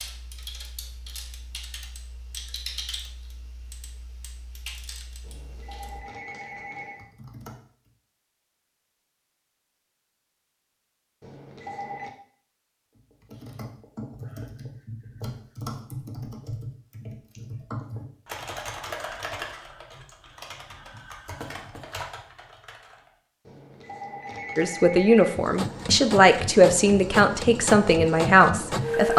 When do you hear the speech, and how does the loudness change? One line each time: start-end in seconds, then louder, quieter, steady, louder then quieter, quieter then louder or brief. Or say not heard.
24.6-29.1 steady.